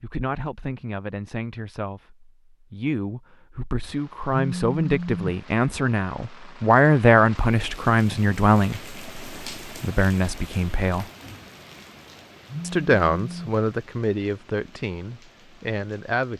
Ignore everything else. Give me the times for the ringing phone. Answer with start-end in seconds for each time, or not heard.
4.3-5.3, 12.4-13.6.